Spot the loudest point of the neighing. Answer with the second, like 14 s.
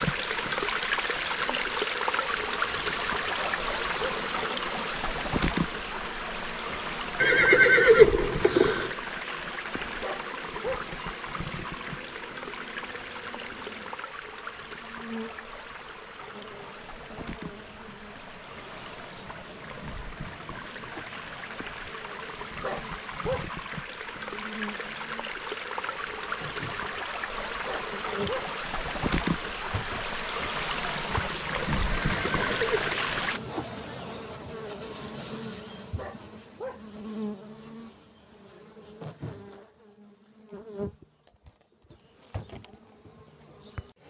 8 s.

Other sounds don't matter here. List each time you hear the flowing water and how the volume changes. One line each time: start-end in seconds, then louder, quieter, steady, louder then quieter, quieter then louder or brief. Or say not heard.
0.0-33.4 quieter then louder.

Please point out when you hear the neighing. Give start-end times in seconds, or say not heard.
7.2-8.9, 32.0-33.1.